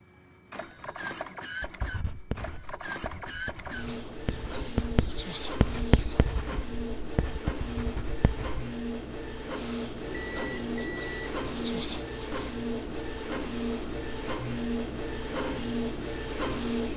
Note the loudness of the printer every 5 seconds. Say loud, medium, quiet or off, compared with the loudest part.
medium, medium, loud, loud.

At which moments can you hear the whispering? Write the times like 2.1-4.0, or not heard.
3.9-6.4, 10.3-12.6.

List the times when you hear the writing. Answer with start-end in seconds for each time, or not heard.
1.6-8.7.